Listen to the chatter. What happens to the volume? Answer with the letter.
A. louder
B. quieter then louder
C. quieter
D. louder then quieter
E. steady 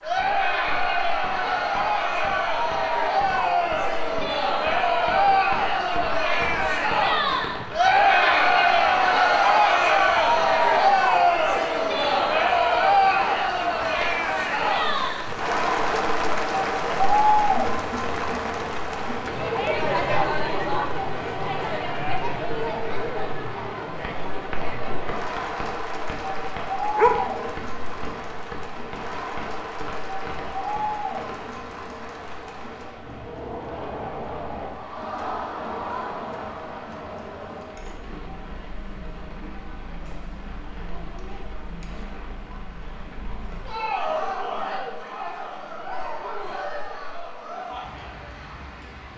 C.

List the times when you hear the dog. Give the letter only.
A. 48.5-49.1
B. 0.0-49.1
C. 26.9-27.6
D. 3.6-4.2
C.